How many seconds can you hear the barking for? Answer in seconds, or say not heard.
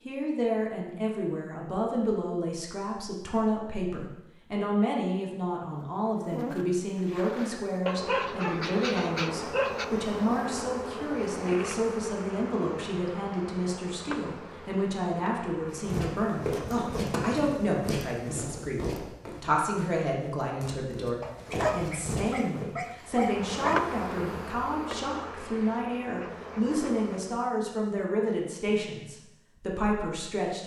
5 s.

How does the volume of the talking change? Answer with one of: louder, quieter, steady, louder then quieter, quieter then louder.
steady.